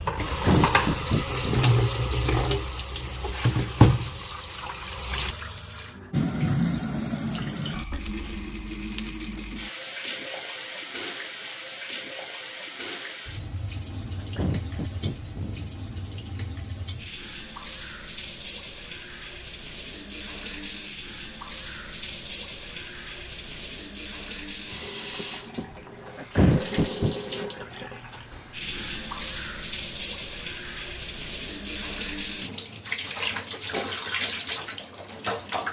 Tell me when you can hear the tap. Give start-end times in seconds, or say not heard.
0.0-35.6.